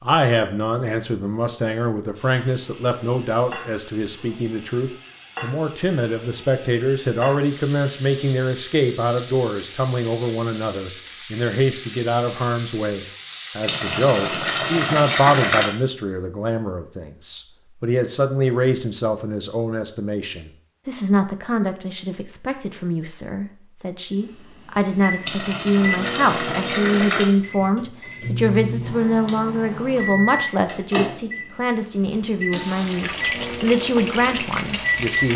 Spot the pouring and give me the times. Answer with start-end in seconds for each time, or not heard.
13.7-15.7, 25.2-27.2.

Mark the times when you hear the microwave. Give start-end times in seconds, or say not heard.
24.2-35.3.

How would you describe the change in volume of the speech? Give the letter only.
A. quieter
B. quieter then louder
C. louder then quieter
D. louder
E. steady
E.